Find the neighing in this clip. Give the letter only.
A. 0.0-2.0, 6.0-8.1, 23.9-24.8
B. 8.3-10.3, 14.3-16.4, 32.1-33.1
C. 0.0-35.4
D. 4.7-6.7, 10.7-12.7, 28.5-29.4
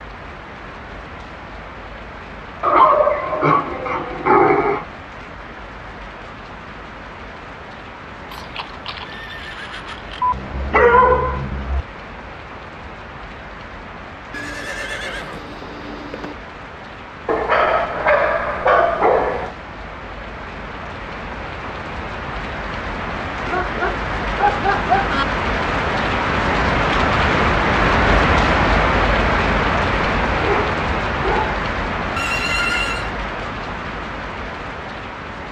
B.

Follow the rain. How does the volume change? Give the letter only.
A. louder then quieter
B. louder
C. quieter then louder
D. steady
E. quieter
B.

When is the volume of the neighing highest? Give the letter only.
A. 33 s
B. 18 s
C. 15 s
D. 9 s
A.